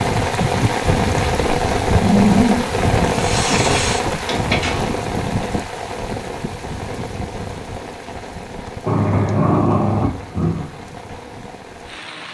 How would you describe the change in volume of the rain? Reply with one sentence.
The loudness of the rain goes down.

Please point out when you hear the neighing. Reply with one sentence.
You can't hear the neighing here.